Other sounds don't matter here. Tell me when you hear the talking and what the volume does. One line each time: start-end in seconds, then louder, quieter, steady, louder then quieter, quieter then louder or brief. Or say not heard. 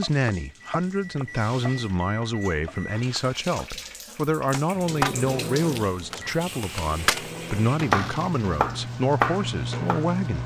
0.0-10.4 steady.